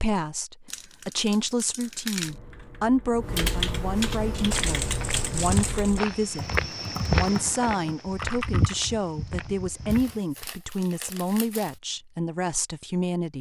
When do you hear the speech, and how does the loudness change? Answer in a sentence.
You can hear the speech from 0.0 to 13.3 s, at a steady volume.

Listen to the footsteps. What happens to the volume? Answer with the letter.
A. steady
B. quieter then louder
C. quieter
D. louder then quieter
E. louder
D.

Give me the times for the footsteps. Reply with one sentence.
The footsteps can be heard from 4.3 to 10.2 s.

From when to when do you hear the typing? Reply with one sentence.
You can hear the typing from 2.2 to 8.8 s.